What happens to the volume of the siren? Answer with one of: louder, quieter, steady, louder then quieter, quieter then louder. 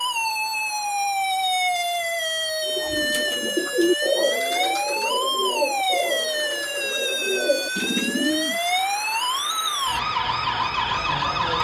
steady.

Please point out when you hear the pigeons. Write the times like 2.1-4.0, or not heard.
2.6-8.6.